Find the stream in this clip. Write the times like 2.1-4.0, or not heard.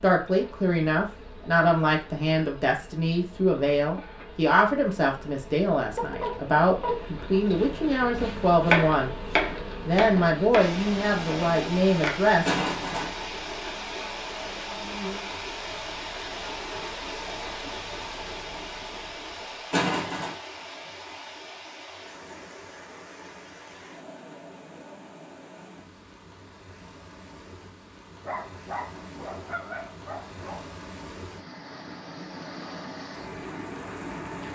10.6-34.4.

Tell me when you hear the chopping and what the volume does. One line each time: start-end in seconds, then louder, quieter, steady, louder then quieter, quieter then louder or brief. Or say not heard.
7.5-12.2 louder then quieter.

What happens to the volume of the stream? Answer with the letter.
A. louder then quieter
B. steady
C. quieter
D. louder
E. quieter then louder
E.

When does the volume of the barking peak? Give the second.
7 s.